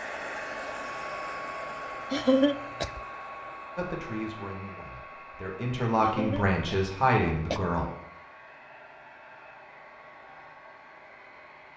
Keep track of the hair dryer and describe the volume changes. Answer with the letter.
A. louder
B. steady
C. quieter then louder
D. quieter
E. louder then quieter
D.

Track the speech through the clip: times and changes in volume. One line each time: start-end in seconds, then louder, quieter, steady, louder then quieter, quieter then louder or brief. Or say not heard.
3.8-7.9 quieter then louder.